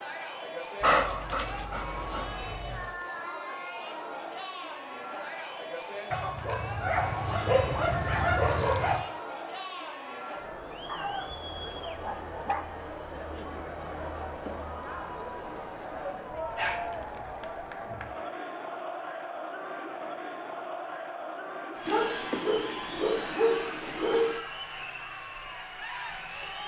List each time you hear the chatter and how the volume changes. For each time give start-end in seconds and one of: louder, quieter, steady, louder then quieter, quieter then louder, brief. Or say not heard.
0.0-26.6 steady.